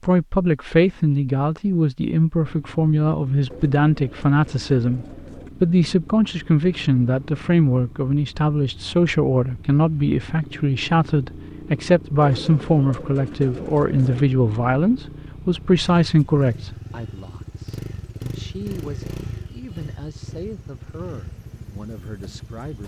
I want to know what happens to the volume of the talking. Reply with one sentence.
The volume of the talking goes down.